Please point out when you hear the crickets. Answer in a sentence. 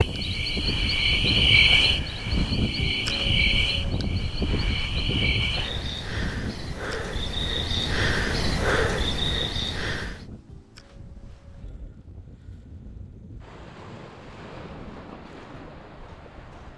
You can hear the crickets from 0.0 to 10.2 s.